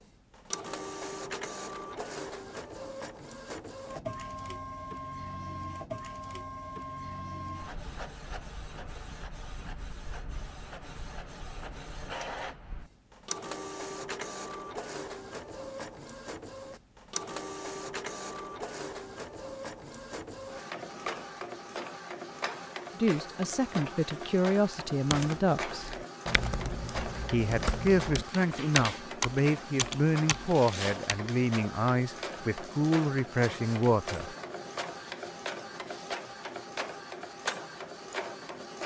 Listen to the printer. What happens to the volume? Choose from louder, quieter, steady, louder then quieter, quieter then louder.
steady.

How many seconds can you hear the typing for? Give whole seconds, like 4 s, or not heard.
6 s.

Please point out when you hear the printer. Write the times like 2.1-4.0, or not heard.
0.0-38.8.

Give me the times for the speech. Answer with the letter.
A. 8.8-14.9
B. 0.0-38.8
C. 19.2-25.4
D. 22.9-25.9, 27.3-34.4
D.